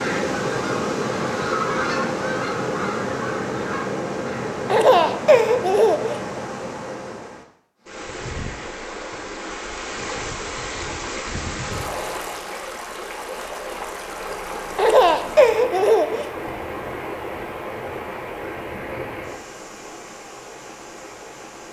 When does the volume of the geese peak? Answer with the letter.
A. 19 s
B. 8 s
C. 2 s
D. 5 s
C.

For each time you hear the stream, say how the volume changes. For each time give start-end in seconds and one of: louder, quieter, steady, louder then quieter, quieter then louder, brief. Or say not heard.
0.0-21.6 quieter.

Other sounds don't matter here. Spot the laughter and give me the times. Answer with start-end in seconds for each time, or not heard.
4.7-6.2, 14.8-16.5.